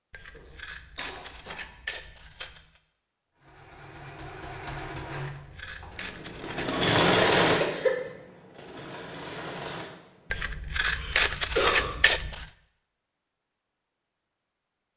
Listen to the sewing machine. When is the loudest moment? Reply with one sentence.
The loudest moment of the sewing machine is at 7 seconds.